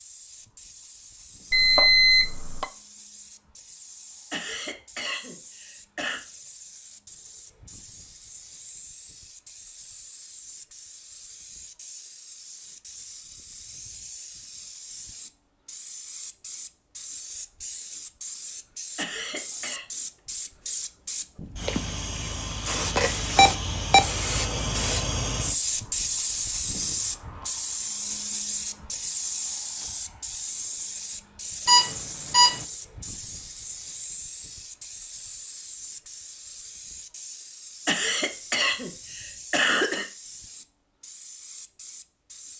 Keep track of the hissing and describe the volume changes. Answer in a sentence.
The loudness of the hissing goes up, then down.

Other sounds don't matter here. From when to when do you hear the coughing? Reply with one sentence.
The coughing can be heard from 4.3 to 6.2 s, from 18.9 to 19.9 s and from 37.9 to 40.0 s.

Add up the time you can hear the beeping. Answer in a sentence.
You can hear the beeping for 3 seconds altogether.